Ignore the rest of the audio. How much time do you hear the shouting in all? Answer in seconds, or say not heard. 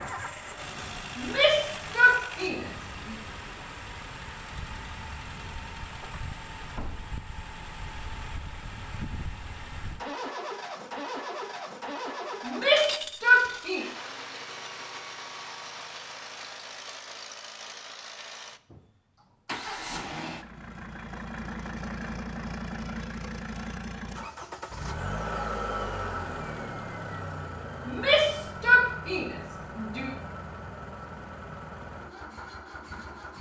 6 s.